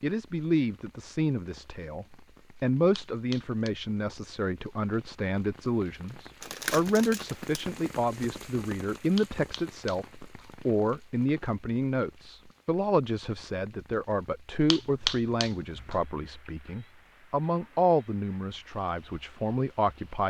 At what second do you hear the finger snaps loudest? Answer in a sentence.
The volume of the finger snaps peaks at 15 seconds.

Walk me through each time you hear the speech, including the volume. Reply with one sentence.
You can hear the speech from 0.0 to 20.2 s, at a steady volume.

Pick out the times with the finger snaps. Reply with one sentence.
You can hear the finger snaps from 3.0 to 3.7 s, from 9.2 to 10.5 s and from 14.7 to 16.0 s.